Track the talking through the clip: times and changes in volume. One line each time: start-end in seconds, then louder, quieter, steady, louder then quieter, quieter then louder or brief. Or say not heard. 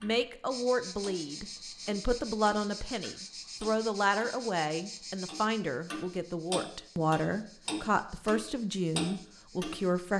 0.0-10.1 steady.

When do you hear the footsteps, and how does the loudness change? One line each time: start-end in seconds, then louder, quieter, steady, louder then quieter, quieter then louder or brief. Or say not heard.
not heard.